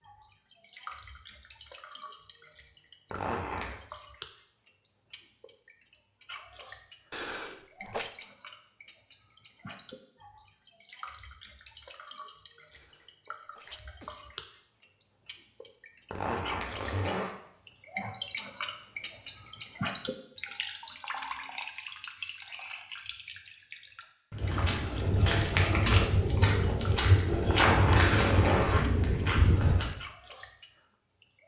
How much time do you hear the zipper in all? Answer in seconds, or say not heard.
3 s.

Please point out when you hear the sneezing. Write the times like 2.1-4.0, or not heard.
7.1-8.1, 12.7-14.4, 27.9-28.5.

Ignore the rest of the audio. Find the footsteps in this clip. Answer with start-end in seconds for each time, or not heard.
24.3-29.9.